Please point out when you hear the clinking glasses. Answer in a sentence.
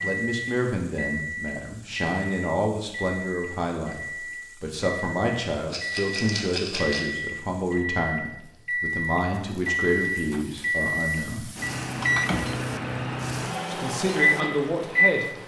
The clinking glasses can't be heard in this clip.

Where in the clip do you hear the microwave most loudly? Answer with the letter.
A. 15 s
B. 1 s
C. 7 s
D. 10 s
A.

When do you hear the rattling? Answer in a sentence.
You can hear the rattling from 5.7 to 7.0 s.